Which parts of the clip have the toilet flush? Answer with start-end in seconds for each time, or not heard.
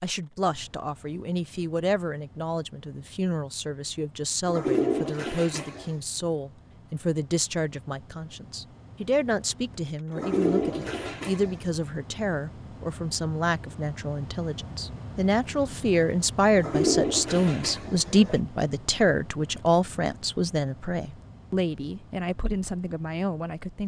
4.5-5.9, 10.2-11.6, 16.6-18.4.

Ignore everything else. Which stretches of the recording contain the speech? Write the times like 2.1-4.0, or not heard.
0.0-23.8.